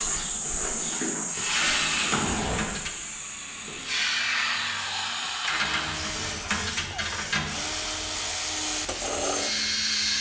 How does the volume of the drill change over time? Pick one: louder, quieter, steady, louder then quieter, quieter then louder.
louder.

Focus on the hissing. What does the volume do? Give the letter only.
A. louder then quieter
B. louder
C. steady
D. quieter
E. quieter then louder
D.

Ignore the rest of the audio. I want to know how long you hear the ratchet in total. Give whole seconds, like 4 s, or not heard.
4 s.